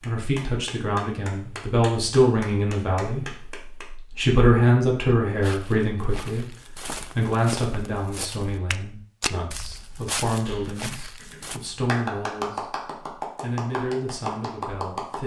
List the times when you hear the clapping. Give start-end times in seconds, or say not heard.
0.0-3.9, 10.4-15.2.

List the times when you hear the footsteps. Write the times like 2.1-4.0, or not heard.
5.2-11.6.